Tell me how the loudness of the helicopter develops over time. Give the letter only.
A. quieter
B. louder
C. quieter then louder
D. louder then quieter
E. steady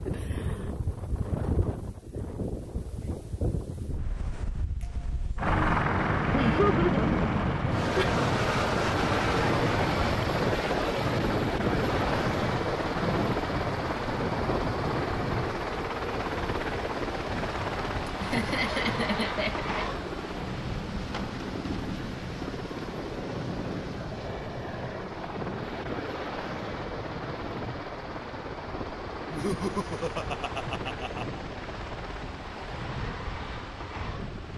A.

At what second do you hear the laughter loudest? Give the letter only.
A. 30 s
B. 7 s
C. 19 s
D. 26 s
B.